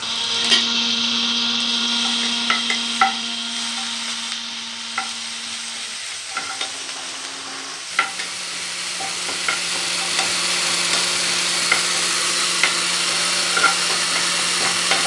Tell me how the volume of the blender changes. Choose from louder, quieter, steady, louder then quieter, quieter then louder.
quieter then louder.